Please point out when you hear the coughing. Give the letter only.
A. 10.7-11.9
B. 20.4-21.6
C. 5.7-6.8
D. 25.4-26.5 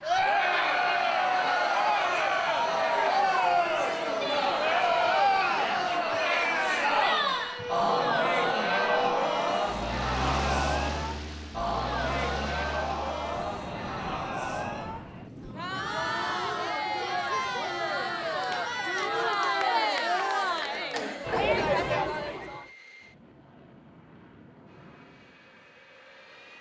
B.